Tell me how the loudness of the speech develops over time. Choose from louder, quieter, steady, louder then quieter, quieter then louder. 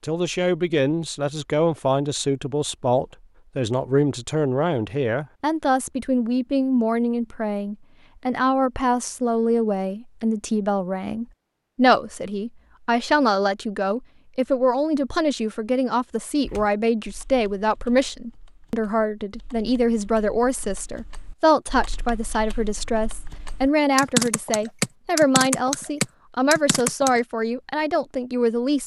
steady.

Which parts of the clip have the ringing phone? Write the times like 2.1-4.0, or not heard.
not heard.